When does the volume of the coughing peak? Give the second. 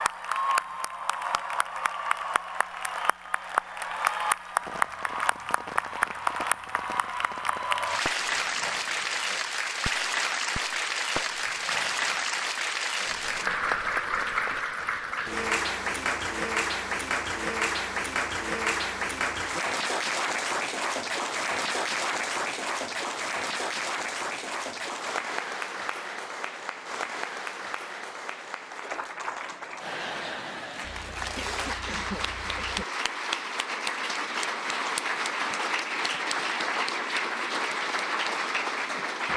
32 s.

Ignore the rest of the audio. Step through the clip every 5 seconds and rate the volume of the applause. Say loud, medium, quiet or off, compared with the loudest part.
loud, loud, loud, loud, loud, medium, loud, loud.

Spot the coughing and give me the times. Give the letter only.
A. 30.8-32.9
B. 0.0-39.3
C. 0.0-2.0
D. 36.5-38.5
A.